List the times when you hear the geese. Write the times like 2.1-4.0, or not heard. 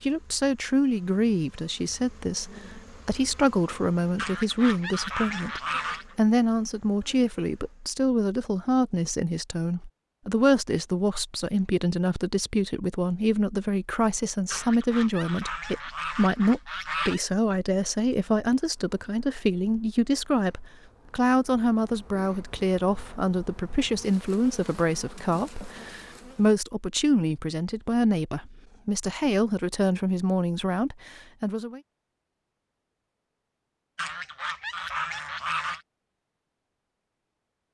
4.2-6.2, 14.5-17.2, 34.0-35.8.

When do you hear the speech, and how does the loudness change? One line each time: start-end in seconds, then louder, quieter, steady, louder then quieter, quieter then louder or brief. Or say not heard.
0.0-31.8 steady.